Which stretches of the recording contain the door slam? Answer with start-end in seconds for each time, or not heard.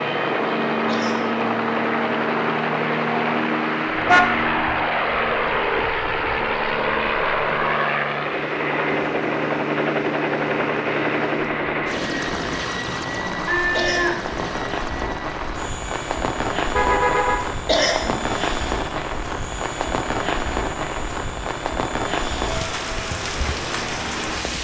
not heard.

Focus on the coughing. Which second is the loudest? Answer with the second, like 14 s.
18 s.